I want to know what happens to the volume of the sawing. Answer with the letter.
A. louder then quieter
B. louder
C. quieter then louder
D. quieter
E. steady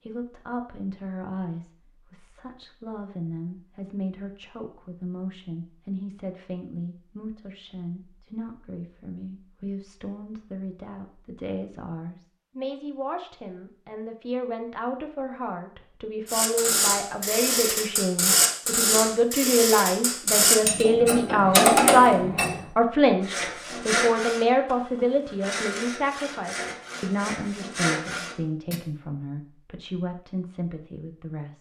C.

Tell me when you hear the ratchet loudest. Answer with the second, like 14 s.
22 s.